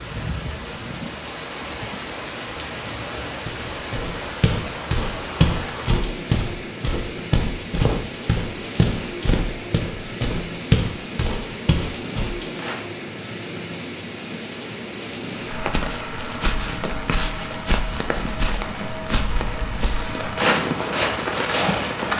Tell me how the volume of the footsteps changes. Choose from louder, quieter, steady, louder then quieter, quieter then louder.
quieter then louder.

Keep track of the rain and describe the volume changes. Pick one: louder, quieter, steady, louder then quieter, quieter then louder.
steady.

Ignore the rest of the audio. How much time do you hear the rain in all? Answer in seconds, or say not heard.
22 s.